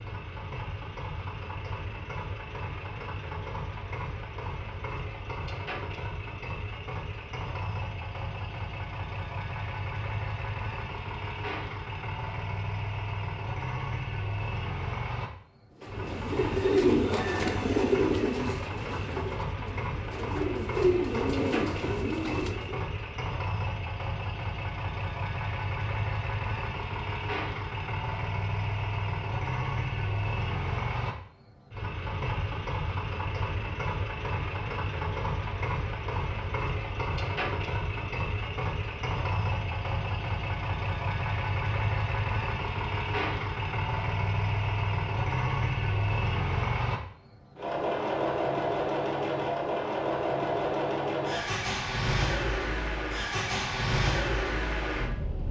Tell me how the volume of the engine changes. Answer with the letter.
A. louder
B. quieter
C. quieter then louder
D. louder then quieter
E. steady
A.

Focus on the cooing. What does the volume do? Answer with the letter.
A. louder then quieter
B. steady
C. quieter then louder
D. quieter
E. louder
C.